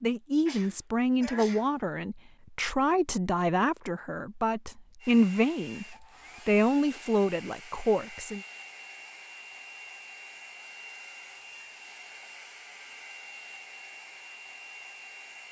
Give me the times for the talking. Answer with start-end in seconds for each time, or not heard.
0.0-8.4.